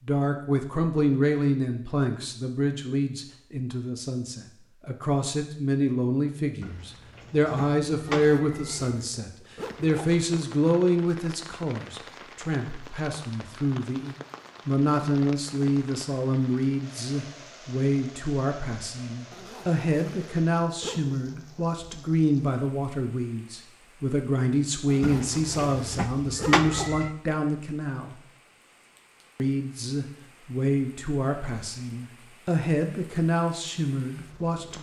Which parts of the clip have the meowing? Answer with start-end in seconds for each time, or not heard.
6.6-9.0, 25.0-27.1.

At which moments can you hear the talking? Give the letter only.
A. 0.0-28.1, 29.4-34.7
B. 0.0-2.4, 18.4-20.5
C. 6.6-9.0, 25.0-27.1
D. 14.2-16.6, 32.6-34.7
A.